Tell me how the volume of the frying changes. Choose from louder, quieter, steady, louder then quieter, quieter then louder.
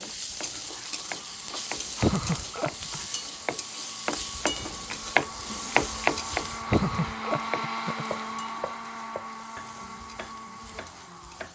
quieter.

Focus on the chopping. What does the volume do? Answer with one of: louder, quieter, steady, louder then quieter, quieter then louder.
louder then quieter.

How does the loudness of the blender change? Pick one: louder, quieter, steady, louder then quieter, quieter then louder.
louder then quieter.